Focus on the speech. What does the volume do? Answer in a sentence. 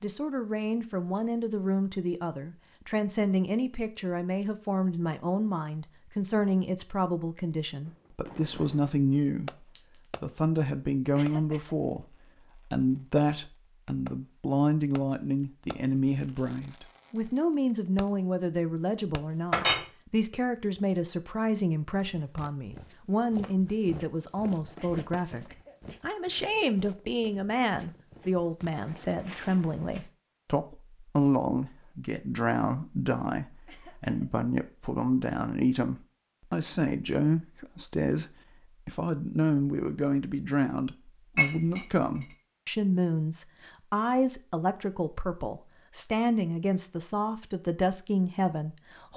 The loudness of the speech stays about the same.